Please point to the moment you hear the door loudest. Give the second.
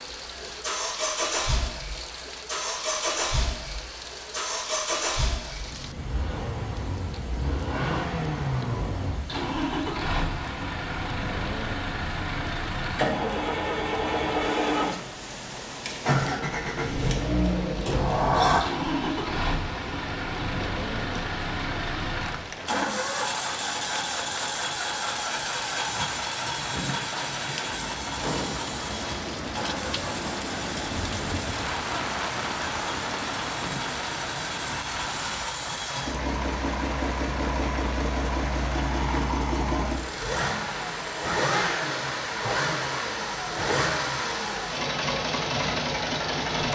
18 s.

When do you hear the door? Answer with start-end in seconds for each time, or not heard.
17.9-18.6, 28.1-28.8.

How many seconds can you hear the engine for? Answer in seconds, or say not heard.
47 s.